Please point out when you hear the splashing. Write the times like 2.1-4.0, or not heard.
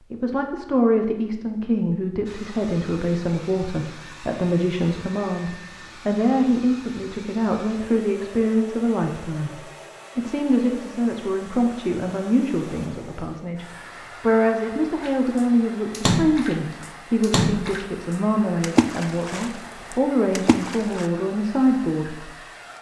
15.0-21.1.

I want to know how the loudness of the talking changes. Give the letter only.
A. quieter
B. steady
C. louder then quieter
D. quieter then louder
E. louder
B.